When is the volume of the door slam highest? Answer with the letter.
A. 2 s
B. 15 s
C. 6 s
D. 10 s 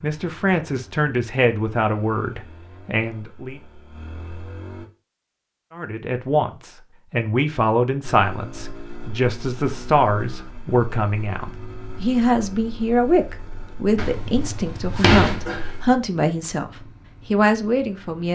B.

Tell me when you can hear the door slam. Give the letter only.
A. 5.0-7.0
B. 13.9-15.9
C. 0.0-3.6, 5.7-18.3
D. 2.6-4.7
B.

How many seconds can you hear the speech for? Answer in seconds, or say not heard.
16 s.